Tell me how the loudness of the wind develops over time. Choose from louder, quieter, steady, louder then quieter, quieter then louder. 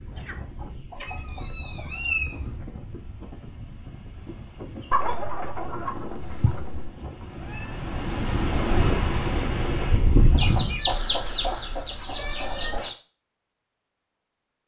louder.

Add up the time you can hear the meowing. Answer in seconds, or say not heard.
5 s.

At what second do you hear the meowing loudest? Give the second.
2 s.